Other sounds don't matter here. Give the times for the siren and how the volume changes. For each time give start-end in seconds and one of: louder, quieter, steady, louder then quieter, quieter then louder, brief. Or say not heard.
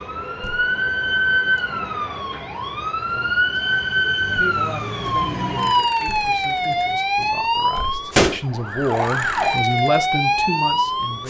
0.0-11.2 steady.